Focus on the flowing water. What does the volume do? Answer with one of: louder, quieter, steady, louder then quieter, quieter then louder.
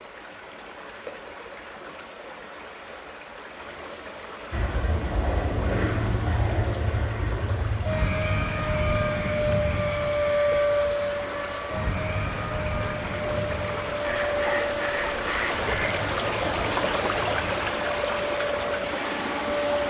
louder.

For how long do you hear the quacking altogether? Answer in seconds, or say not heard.
2 s.